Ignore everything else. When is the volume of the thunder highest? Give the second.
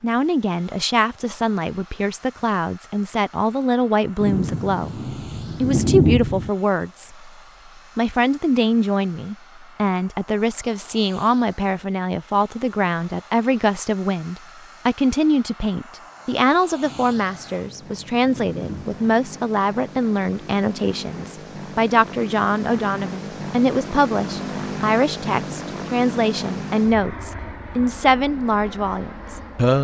6 s.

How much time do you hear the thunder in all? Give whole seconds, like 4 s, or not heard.
5 s.